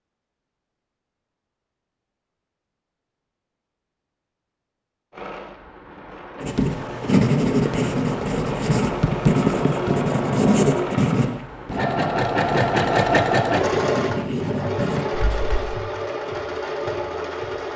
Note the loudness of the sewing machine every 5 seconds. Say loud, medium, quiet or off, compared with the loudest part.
off, medium, loud, medium.